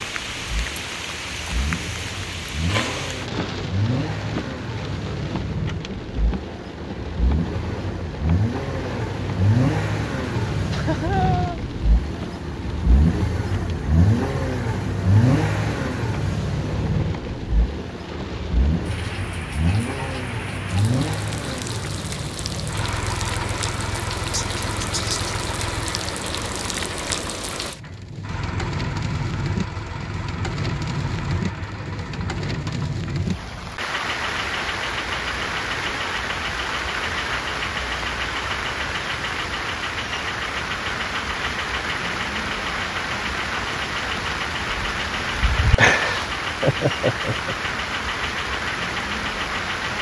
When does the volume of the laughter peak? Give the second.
46 s.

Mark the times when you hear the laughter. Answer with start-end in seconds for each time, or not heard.
10.7-11.6, 24.3-25.4, 45.8-47.5.